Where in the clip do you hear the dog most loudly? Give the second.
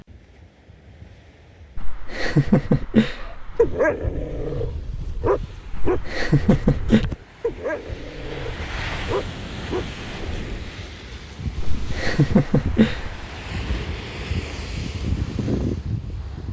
4 s.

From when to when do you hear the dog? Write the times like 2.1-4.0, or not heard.
3.2-10.7.